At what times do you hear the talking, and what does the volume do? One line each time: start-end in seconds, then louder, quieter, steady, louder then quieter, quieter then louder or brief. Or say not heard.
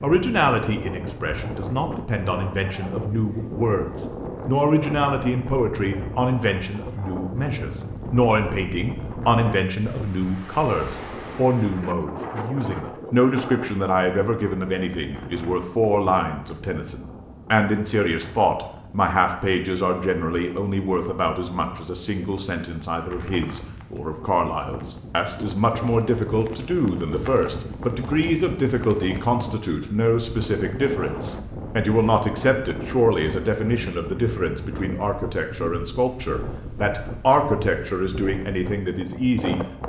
0.0-39.6 steady.